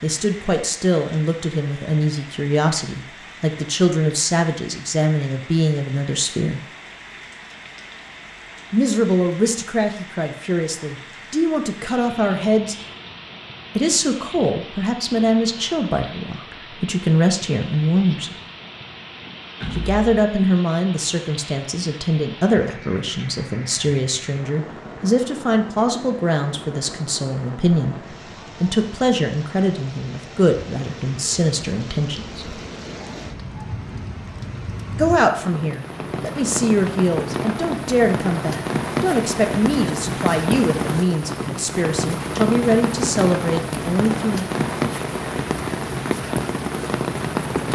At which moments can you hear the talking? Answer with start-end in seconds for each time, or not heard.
0.0-6.6, 8.7-12.8, 13.8-18.4, 19.7-32.4, 35.0-44.5.